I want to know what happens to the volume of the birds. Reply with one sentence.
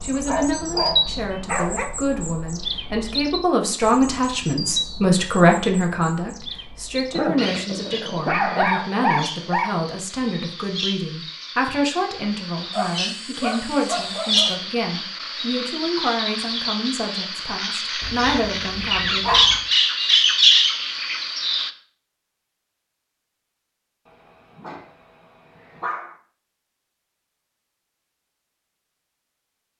The volume of the birds goes down, then up.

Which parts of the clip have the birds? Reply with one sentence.
The birds can be heard from 0.0 to 21.7 s.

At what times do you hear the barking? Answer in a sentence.
You can hear the barking from 0.1 to 1.9 s, from 7.1 to 9.8 s, from 12.7 to 14.6 s, from 18.0 to 19.6 s and from 24.1 to 26.1 s.